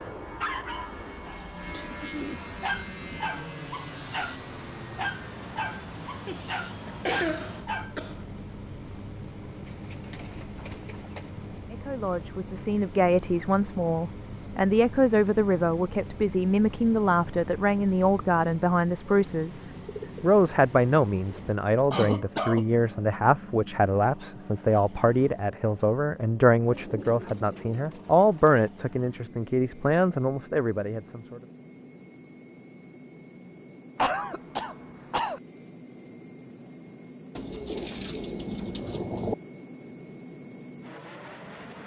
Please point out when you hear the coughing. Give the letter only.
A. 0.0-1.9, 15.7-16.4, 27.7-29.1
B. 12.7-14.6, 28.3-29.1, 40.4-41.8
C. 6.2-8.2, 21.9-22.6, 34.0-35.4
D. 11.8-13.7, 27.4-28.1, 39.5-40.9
C.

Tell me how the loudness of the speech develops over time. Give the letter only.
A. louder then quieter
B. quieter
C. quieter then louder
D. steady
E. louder
D.